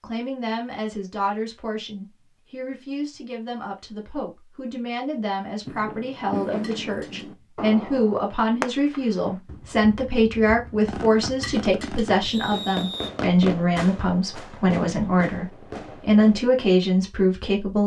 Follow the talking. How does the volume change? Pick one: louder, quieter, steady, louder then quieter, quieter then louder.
louder.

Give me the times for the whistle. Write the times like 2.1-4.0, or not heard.
12.2-13.2.